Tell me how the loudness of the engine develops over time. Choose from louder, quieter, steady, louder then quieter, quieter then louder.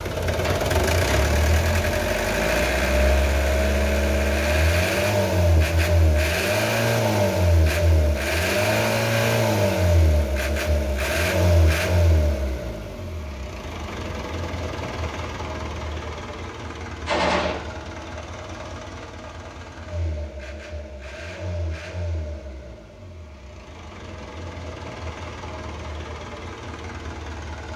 quieter.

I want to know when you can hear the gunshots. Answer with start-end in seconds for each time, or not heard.
0.4-1.4, 17.1-17.6.